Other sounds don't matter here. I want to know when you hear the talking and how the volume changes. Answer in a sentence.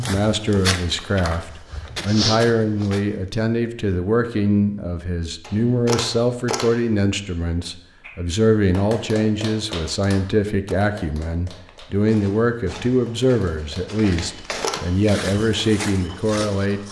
You can hear the talking from 0.0 to 16.8 s, at a steady volume.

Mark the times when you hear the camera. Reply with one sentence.
The camera can be heard from 5.4 to 6.8 s and from 14.2 to 14.8 s.